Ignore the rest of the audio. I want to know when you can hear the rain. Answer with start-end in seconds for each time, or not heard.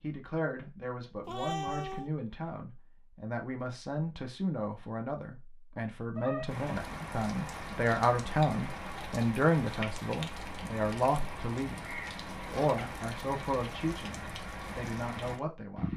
6.5-15.9.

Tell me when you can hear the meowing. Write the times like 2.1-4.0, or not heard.
1.2-2.1, 6.2-7.2, 12.6-13.1.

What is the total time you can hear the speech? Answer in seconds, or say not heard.
16 s.